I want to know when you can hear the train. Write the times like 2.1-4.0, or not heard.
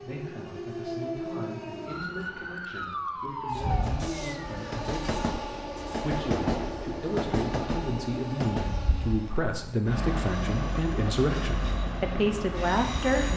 3.5-13.3.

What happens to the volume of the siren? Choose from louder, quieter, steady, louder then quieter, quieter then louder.
steady.